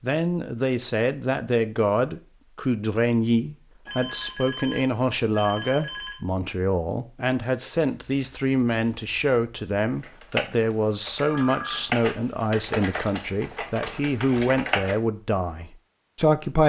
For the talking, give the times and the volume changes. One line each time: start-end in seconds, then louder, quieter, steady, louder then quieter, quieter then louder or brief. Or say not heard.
0.0-16.6 steady.